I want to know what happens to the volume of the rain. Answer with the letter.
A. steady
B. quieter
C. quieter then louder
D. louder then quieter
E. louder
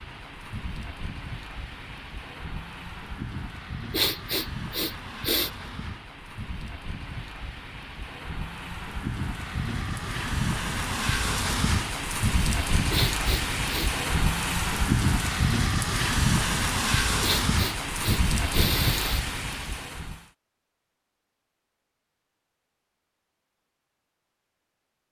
E.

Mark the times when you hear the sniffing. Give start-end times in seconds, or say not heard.
3.9-5.5, 12.9-13.9, 17.2-19.2.